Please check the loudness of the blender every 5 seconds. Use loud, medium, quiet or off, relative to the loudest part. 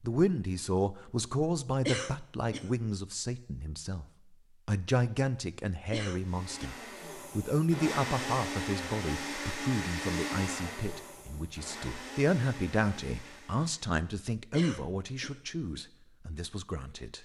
off, loud, loud, off.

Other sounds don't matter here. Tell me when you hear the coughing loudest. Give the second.
2 s.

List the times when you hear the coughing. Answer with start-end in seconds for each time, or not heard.
1.9-2.7, 5.9-6.8, 14.5-15.4.